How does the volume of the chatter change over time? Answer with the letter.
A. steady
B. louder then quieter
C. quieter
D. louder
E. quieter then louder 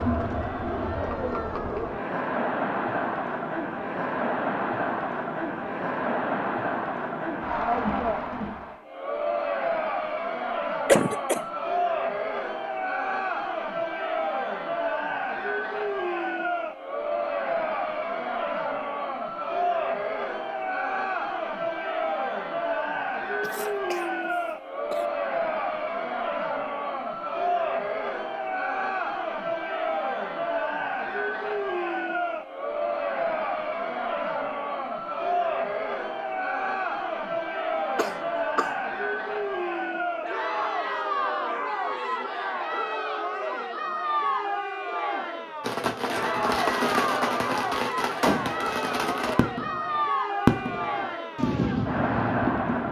A.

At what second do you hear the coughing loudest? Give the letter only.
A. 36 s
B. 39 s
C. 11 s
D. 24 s
C.